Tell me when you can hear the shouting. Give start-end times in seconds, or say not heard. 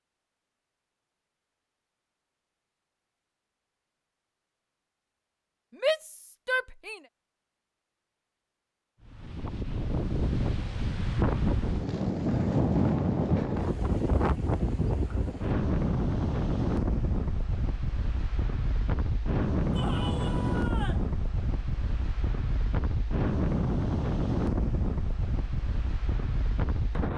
5.8-7.0, 19.7-21.1.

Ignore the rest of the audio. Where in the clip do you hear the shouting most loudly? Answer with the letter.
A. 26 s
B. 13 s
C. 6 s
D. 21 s
C.